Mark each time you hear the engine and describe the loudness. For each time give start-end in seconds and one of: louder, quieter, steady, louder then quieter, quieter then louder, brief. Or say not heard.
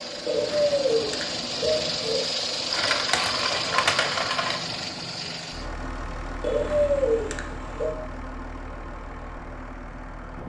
0.0-10.4 quieter.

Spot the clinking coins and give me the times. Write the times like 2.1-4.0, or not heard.
2.7-4.6.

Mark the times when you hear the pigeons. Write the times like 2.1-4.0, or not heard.
0.2-2.2, 6.4-8.0.